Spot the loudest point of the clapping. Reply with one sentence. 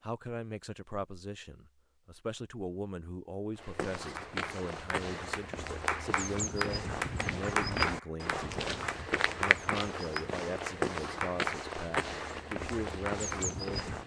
The loudest moment of the clapping is at 8 seconds.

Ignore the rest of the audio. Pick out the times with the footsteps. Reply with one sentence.
The footsteps can be heard from 3.5 to 14.0 s.